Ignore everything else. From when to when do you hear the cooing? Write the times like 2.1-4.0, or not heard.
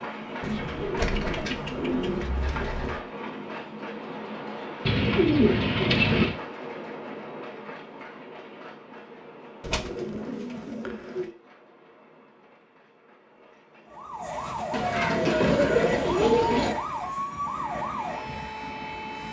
0.4-3.0, 4.8-6.3, 9.6-11.3, 14.7-16.8.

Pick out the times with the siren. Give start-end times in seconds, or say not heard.
13.8-19.2.